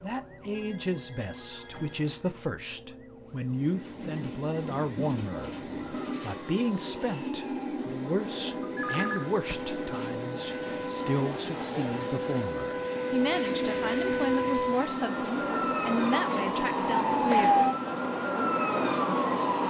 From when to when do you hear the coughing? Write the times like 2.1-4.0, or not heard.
not heard.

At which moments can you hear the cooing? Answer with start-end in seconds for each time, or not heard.
not heard.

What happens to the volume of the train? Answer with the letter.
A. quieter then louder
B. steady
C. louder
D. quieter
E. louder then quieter
B.